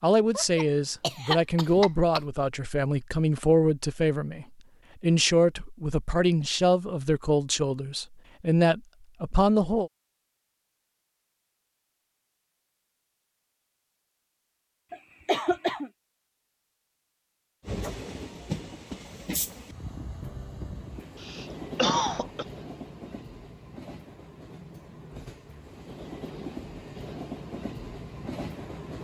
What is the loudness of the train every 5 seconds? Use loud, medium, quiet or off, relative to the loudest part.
off, off, off, loud, medium, loud.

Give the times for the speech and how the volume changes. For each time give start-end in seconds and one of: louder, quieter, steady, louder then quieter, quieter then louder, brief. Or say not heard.
0.0-9.9 steady.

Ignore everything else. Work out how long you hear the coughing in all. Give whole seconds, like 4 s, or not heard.
4 s.